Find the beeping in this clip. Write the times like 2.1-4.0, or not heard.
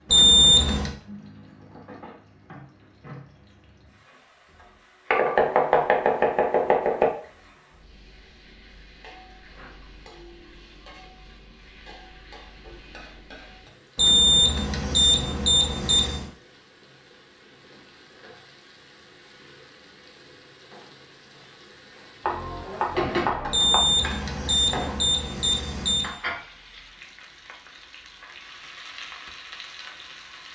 0.1-0.9, 13.9-16.2, 23.5-26.1.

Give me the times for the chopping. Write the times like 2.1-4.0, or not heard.
5.1-7.1, 22.2-23.8.